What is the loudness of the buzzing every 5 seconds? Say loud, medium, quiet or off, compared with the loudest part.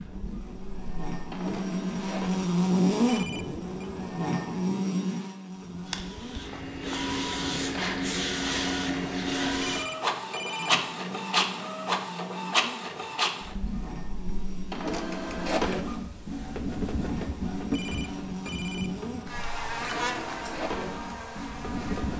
loud, medium, quiet, medium, medium.